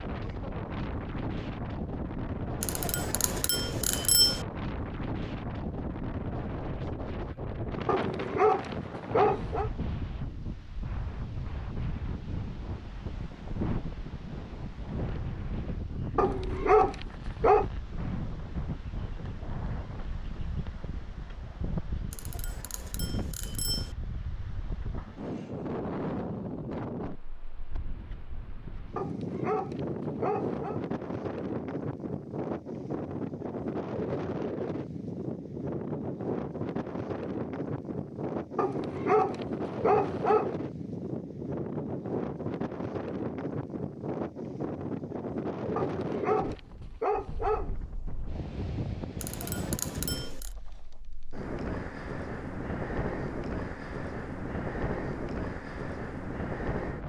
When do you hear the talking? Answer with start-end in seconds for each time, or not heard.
not heard.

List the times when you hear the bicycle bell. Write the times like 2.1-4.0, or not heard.
2.6-4.5, 22.1-23.9, 49.2-50.5.